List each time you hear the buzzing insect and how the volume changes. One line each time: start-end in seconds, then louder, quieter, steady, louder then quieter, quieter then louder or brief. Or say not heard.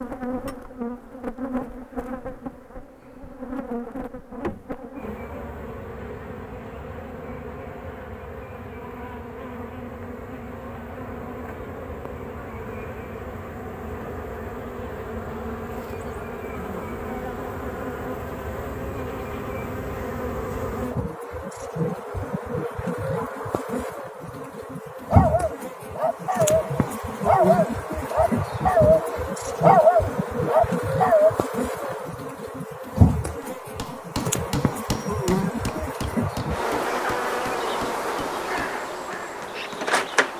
0.0-40.3 louder.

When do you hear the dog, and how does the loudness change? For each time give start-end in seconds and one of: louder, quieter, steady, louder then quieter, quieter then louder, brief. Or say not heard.
25.1-31.3 louder.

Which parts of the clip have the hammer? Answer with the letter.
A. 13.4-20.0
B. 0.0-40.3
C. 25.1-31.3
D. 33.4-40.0
D.